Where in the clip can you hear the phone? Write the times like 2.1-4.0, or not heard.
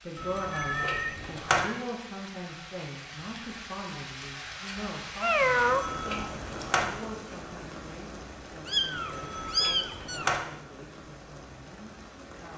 0.1-1.6, 5.4-6.8, 8.9-10.4.